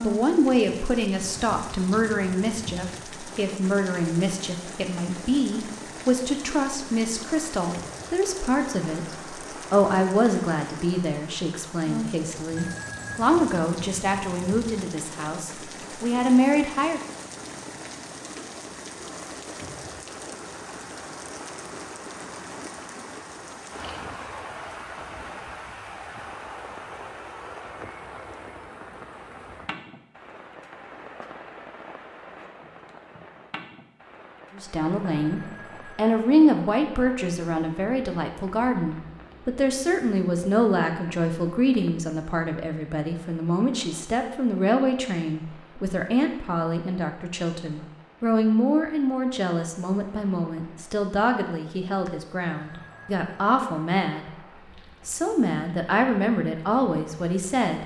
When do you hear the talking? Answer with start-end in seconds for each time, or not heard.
0.0-17.0, 34.5-54.2, 55.0-57.8.